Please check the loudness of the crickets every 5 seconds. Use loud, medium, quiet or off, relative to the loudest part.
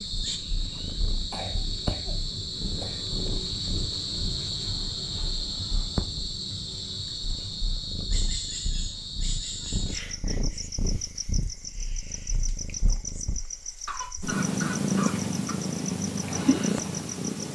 loud, loud, medium, medium.